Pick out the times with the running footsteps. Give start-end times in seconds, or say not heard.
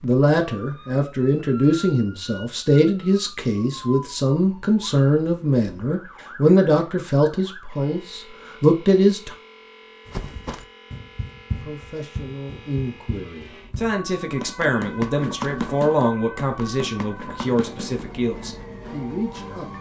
10.1-18.6.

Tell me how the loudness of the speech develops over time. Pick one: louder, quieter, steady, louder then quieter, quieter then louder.
quieter.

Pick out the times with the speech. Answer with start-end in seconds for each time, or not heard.
0.0-9.3, 11.6-19.7.